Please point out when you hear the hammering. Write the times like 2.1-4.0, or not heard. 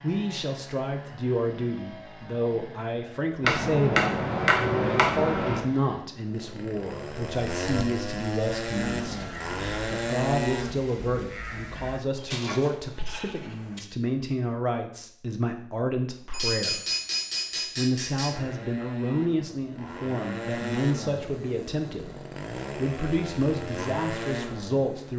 3.4-5.7, 16.3-18.4.